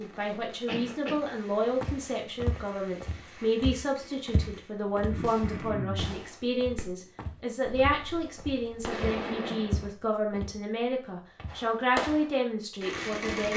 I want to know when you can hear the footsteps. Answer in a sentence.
You can hear the footsteps from 1.8 to 10.6 s and from 11.3 to 12.2 s.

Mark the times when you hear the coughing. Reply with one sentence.
You can hear the coughing from 0.7 to 1.2 s, from 5.1 to 6.2 s and from 9.1 to 9.8 s.